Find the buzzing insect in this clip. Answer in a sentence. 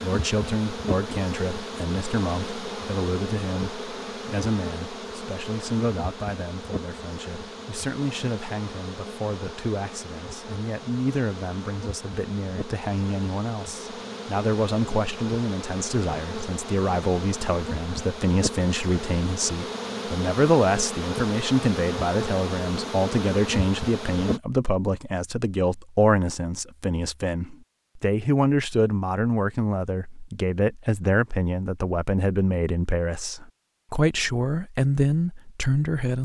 You can hear the buzzing insect from 0.0 to 24.4 s.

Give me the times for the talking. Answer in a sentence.
You can hear the talking from 0.0 to 36.2 s.